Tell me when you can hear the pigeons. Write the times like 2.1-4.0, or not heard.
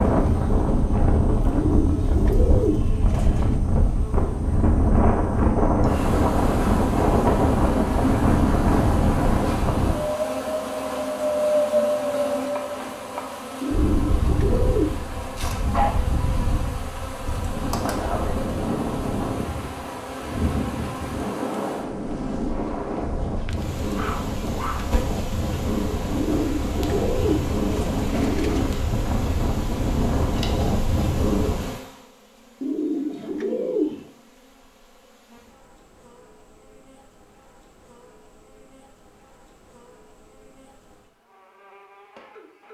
1.4-3.6, 13.6-15.1, 26.1-28.9, 32.6-34.0.